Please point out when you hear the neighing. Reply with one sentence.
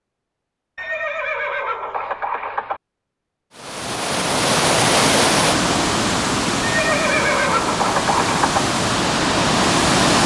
You can hear the neighing from 0.8 to 2.8 s and from 6.6 to 8.7 s.